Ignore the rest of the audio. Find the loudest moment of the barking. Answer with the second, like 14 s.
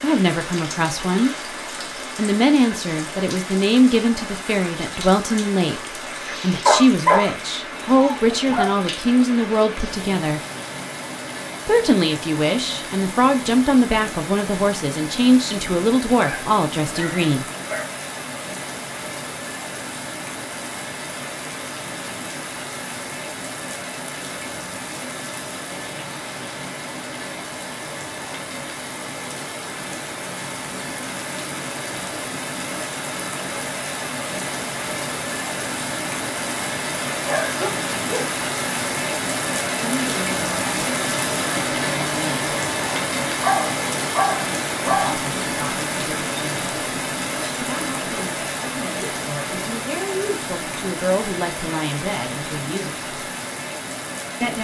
7 s.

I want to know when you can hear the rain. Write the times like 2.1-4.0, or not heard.
0.0-54.5.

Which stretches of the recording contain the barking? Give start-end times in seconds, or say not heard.
6.7-8.7, 16.2-17.9, 37.2-38.2, 43.4-45.1.